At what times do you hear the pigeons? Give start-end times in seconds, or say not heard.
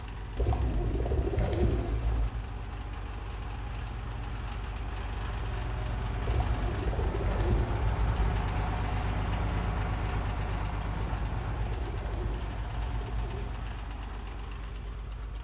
0.3-2.3, 6.2-8.4, 10.9-13.7.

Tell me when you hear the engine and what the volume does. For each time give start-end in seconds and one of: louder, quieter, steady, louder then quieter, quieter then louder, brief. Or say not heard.
0.0-15.3 louder then quieter.